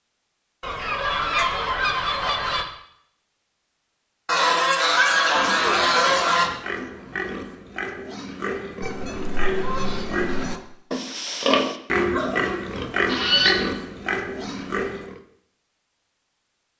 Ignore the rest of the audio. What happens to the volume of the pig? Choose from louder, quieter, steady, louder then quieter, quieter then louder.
louder.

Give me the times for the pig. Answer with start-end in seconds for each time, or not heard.
5.0-15.2.